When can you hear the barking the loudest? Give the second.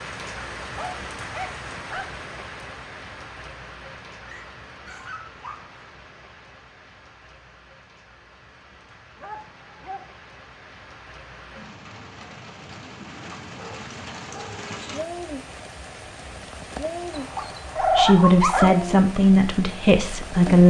18 s.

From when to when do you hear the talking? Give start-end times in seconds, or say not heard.
17.8-20.6.